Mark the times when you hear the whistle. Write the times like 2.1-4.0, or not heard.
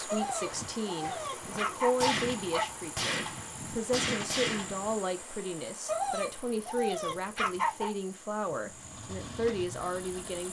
not heard.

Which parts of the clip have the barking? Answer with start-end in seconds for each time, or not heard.
0.1-2.6, 5.8-7.9.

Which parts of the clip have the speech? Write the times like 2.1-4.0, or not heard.
0.0-10.4.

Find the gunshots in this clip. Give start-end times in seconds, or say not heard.
1.4-5.0.